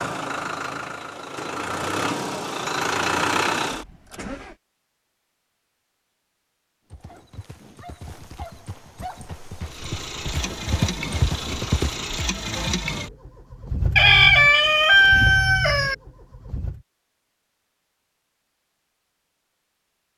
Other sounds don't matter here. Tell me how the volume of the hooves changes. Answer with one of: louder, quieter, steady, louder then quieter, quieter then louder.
louder.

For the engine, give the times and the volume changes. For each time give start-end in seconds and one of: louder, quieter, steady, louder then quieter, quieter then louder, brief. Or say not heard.
0.0-4.5 louder
9.7-16.9 steady.